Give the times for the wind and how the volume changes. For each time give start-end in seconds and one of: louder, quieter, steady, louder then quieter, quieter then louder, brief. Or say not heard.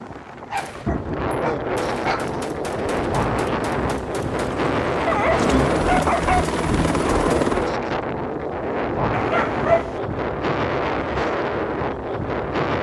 0.0-12.7 steady.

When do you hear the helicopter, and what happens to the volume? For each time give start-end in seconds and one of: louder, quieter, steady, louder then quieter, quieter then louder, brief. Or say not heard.
2.6-7.8 louder.